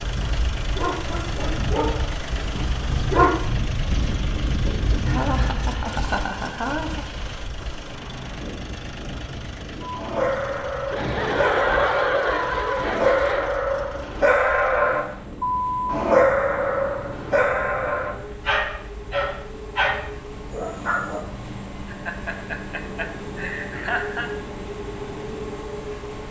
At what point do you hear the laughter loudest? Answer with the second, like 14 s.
12 s.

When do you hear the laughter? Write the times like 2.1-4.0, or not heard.
5.0-7.0, 10.9-13.6, 21.9-24.3.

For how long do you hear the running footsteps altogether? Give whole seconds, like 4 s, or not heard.
not heard.